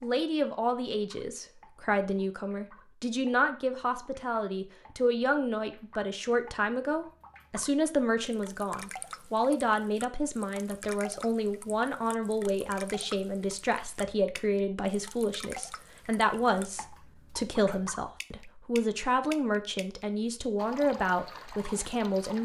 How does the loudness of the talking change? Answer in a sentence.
The volume of the talking stays about the same.